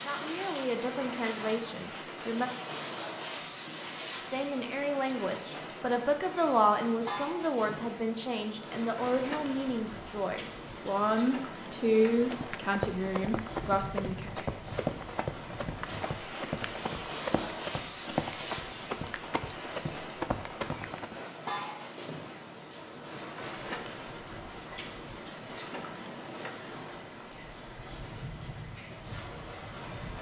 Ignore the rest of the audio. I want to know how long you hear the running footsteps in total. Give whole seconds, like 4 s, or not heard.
9 s.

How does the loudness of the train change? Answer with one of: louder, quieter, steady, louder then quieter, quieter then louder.
steady.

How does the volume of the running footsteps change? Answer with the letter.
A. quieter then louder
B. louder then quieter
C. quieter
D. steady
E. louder
D.